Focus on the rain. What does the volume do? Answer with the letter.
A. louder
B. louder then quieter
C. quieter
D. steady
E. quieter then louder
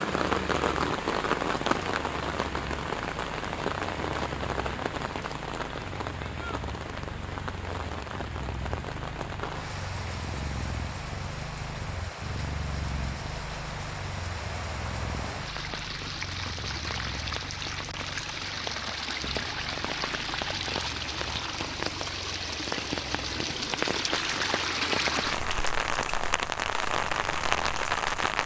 E.